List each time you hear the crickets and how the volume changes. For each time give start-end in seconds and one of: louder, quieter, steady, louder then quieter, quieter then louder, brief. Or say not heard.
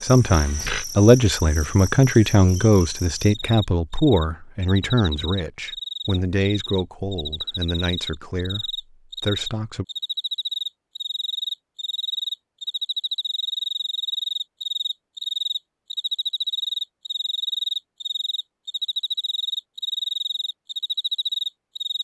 0.0-21.9 louder.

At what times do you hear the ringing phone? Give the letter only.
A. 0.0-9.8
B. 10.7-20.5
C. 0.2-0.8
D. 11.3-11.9
C.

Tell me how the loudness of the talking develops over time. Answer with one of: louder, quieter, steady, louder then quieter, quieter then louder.
quieter.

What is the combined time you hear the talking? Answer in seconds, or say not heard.
10 s.